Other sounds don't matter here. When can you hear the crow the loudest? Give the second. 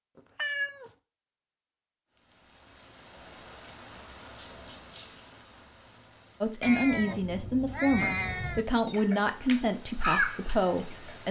10 s.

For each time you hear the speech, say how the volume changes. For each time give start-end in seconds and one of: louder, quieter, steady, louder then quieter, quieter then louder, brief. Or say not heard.
6.4-11.2 steady.